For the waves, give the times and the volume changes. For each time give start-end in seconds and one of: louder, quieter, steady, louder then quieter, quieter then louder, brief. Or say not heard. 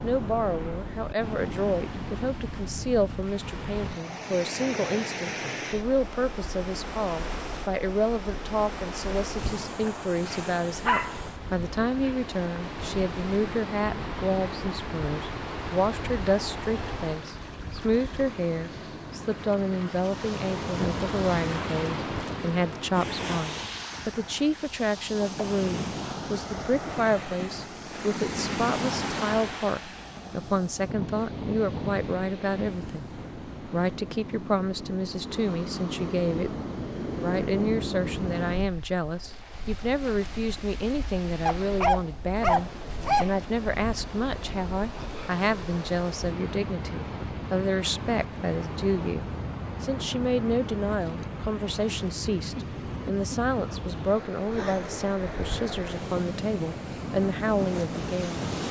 0.0-58.6 steady.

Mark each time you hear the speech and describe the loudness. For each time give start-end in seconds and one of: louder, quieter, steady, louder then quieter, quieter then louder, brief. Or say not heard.
0.0-36.5 steady
37.2-58.4 steady.